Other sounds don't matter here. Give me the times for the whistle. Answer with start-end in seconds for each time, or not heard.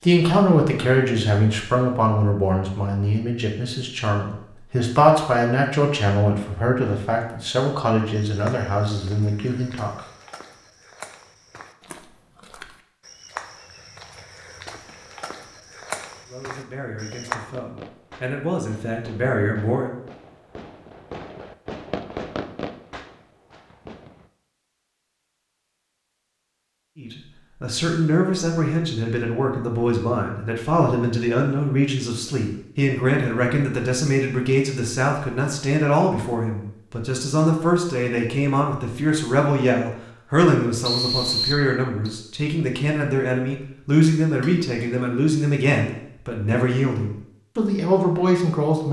40.8-42.1.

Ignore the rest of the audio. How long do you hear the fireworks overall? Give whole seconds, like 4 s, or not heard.
7 s.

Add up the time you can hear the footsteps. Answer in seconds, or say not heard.
9 s.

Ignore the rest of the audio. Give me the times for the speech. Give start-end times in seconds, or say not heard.
0.0-10.0, 16.2-19.9, 26.9-48.8.